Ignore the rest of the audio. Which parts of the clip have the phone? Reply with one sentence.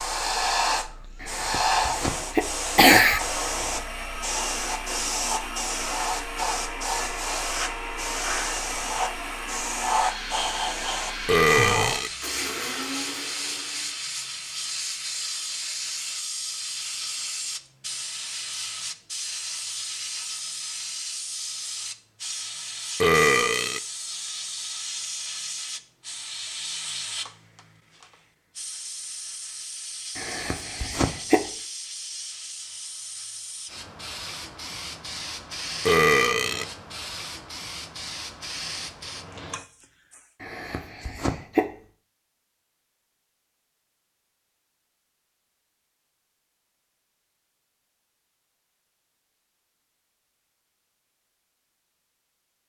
The phone can't be heard in this clip.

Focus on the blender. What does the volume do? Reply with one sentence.
The loudness of the blender stays about the same.